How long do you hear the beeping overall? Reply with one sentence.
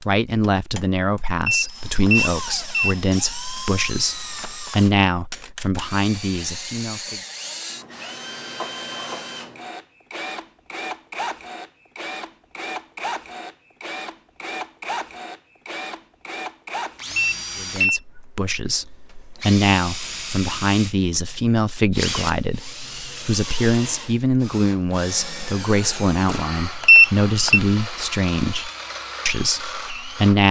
The beeping can be heard for 3 seconds in total.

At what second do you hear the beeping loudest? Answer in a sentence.
The loudest moment of the beeping is at 27 seconds.